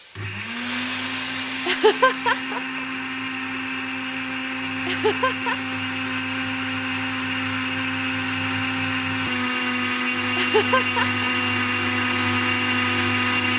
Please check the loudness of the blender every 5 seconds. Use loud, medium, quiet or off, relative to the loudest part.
medium, loud, loud.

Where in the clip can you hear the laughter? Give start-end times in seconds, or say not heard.
1.6-2.6, 4.8-5.6, 10.3-11.2.